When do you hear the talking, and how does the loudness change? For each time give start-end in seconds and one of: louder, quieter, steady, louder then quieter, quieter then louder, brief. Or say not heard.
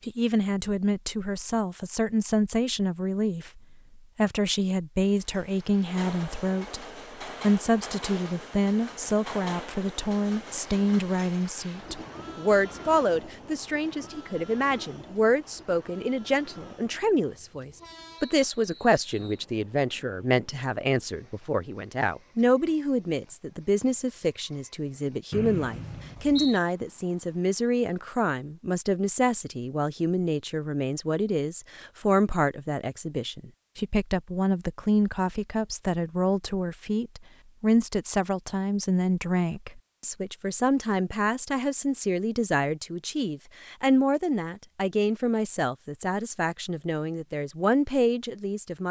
0.1-48.8 steady.